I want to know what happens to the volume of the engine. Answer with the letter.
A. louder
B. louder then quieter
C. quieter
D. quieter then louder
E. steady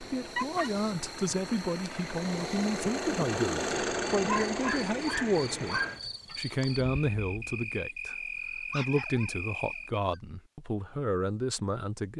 B.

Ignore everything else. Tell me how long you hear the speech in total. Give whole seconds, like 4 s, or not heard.
12 s.